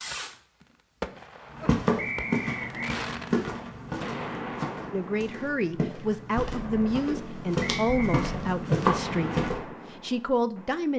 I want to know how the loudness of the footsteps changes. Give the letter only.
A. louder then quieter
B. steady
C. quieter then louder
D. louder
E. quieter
C.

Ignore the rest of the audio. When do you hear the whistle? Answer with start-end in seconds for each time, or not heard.
1.9-3.0, 7.7-8.2.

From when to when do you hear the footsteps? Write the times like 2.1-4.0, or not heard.
1.6-9.6.